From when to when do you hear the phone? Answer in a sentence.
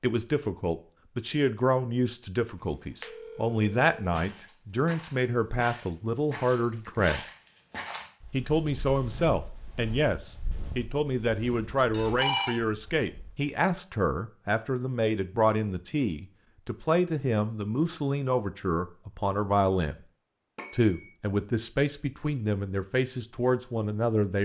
The phone can be heard from 3.0 to 4.0 s, from 11.9 to 12.6 s and from 20.6 to 21.1 s.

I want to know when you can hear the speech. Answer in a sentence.
You can hear the speech from 0.0 to 7.2 s, from 8.3 to 20.0 s and from 20.7 to 24.3 s.